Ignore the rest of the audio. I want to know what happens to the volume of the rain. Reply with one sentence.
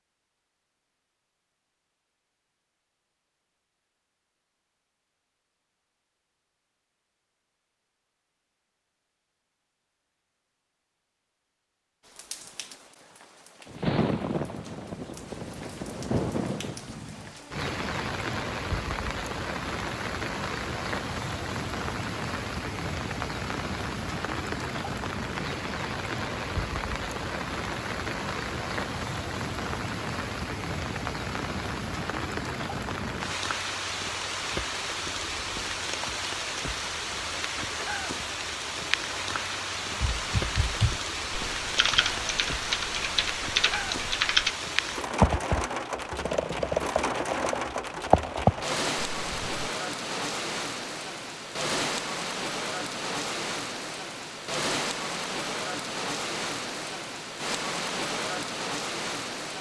The volume of the rain stays about the same.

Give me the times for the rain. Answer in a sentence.
You can hear the rain from 12.1 to 59.5 s.